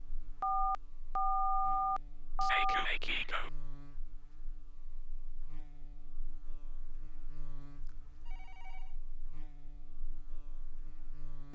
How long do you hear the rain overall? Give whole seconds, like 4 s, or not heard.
not heard.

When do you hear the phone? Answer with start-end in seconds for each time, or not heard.
0.4-2.9, 7.6-8.9.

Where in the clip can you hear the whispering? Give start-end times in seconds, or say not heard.
2.4-3.5.